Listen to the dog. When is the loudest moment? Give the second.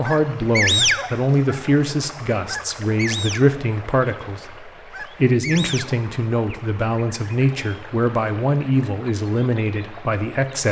1 s.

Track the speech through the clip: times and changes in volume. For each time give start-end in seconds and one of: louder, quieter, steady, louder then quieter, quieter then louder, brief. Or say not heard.
0.0-10.6 steady.